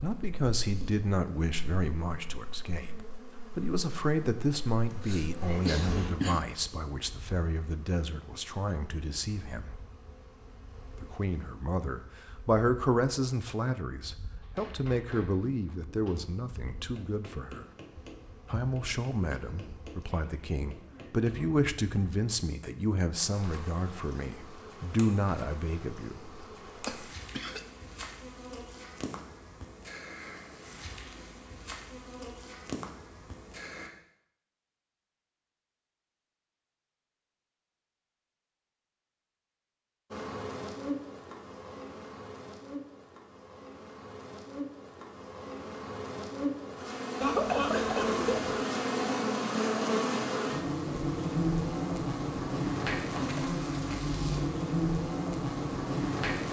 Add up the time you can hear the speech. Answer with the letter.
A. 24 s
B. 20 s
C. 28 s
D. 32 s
A.